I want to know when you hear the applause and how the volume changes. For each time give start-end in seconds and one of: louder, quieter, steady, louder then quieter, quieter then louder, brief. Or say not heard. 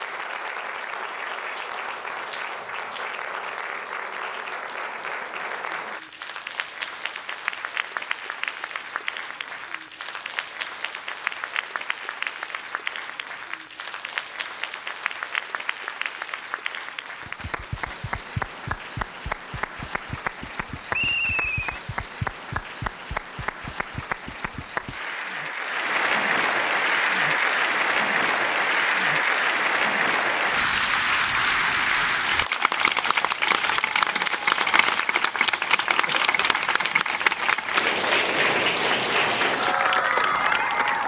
0.0-41.0 louder.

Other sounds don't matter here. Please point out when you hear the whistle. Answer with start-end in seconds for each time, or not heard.
20.9-21.8.